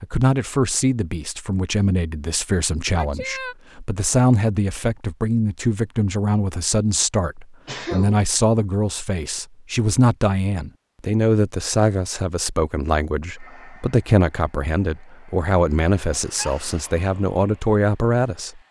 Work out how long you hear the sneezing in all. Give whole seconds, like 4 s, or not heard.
2 s.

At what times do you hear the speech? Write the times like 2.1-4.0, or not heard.
0.0-18.6.